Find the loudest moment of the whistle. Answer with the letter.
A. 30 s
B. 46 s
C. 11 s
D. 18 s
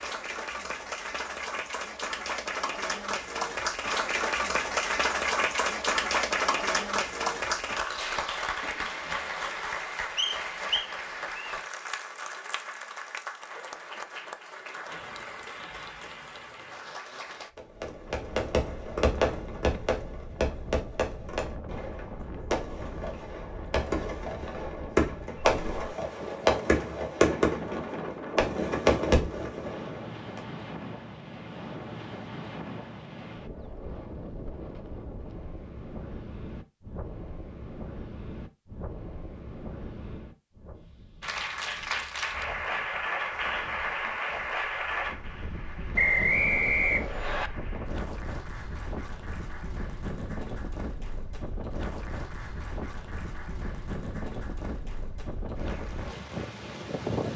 B.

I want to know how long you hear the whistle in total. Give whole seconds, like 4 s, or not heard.
3 s.